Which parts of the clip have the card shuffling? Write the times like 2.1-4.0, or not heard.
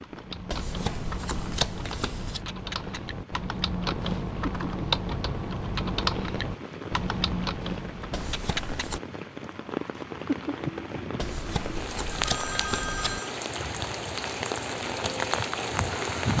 0.5-2.4, 8.1-9.0, 11.2-13.2.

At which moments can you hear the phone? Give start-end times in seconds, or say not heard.
12.2-13.3.